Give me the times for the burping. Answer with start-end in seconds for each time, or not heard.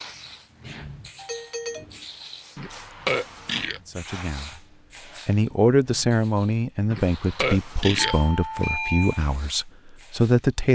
2.5-3.8, 6.9-8.2.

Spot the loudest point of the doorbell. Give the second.
9 s.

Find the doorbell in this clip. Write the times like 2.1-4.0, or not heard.
1.1-1.9, 8.0-9.2.